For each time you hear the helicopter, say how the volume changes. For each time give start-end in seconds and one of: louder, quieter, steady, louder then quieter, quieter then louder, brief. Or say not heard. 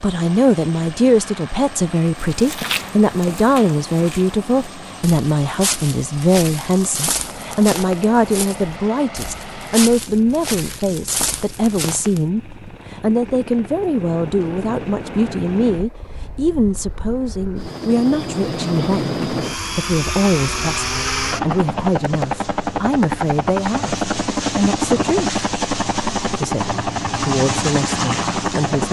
0.0-28.8 louder.